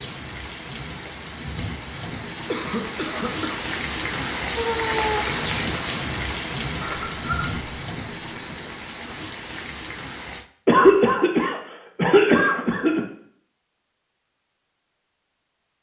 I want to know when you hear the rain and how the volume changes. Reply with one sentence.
You can hear the rain from 0.0 to 10.4 s, getting louder then quieter.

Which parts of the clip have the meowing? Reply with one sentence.
The meowing can be heard from 4.5 to 5.3 s.